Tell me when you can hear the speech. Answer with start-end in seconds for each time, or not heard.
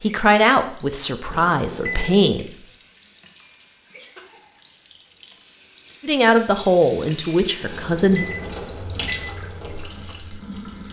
0.0-2.5, 6.0-8.2.